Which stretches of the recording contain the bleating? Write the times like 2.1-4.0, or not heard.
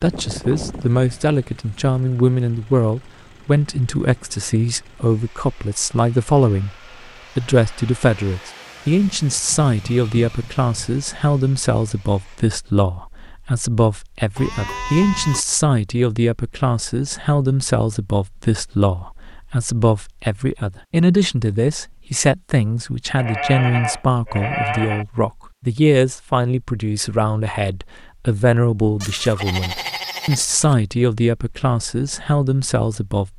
0.1-1.8, 9.2-10.9, 14.3-15.4, 23.1-25.1, 29.0-30.8.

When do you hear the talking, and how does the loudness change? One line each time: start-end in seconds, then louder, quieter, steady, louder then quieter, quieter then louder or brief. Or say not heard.
0.0-6.8 steady
7.3-33.3 steady.